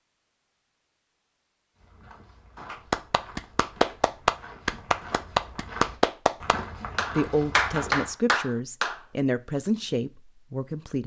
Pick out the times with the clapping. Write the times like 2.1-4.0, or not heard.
2.6-9.0.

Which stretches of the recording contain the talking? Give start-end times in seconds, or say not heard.
7.1-11.0.